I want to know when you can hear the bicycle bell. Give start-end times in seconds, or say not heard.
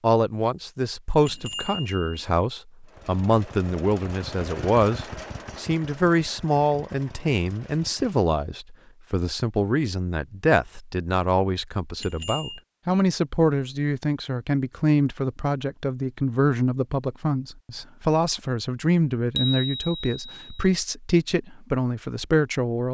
1.2-2.2, 12.0-12.6, 19.4-20.7.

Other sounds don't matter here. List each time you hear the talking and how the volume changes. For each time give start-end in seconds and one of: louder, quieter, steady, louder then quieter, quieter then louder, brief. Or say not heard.
0.0-22.8 steady.